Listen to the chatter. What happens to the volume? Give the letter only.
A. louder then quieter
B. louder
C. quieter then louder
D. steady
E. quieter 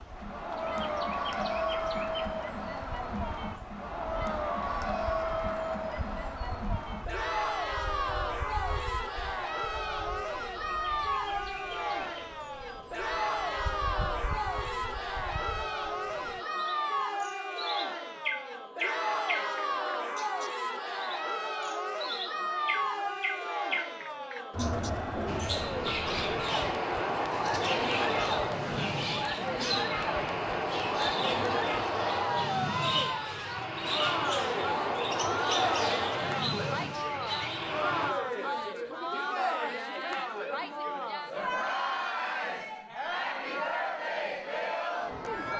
D.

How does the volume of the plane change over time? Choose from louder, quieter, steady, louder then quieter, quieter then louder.
steady.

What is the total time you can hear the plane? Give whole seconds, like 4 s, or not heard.
13 s.